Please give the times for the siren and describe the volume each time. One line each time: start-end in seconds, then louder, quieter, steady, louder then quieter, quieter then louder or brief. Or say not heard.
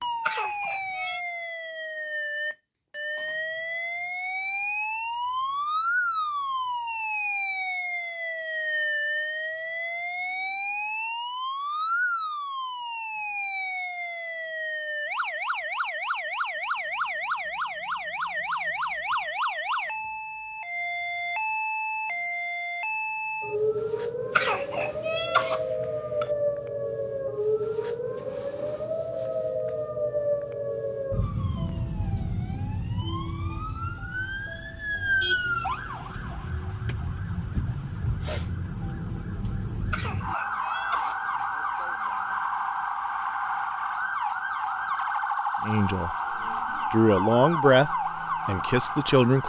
0.0-49.4 steady.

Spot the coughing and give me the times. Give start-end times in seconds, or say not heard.
0.2-1.2, 24.4-26.2, 39.9-41.4.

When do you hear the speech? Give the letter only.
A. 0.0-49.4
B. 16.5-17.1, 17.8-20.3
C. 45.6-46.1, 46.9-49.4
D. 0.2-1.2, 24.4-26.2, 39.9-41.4
C.